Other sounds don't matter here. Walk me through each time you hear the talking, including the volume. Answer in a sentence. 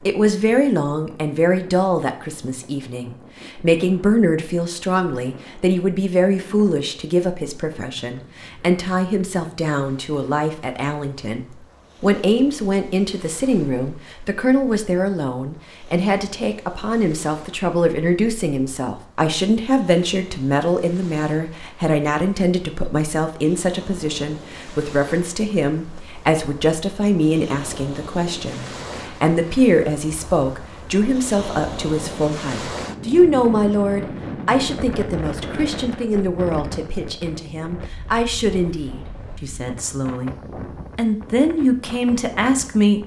The talking can be heard from 0.0 to 40.4 s, at a steady volume; and briefly from 41.0 to 43.0 s.